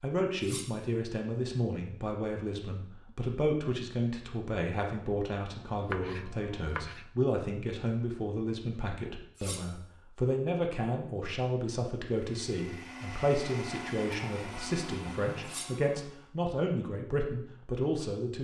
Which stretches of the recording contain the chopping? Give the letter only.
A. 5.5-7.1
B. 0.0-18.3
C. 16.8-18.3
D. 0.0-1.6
A.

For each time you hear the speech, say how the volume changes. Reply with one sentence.
The speech can be heard from 0.0 to 18.3 s, at a steady volume.